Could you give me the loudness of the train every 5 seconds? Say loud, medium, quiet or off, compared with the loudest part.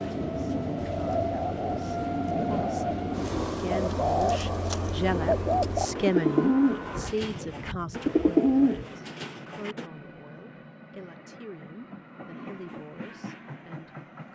loud, medium, quiet.